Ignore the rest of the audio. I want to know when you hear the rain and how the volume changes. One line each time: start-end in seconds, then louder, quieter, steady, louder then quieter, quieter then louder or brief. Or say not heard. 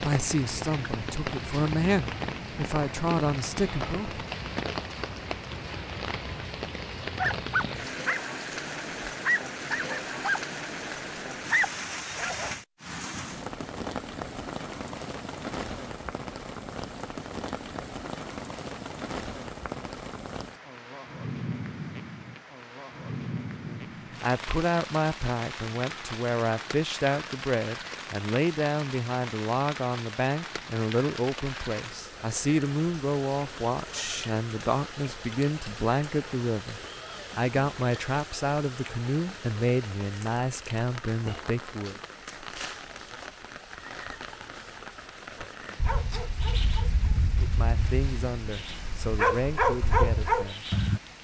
0.0-51.2 quieter.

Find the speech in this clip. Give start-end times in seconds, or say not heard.
0.0-4.2, 23.6-42.0, 47.2-50.7.